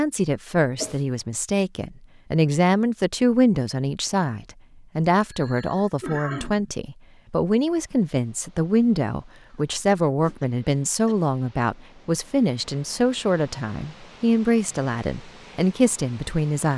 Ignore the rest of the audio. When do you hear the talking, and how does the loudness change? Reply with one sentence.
You can hear the talking from 0.0 to 16.7 s, at a steady volume.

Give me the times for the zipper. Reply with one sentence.
You can't hear the zipper here.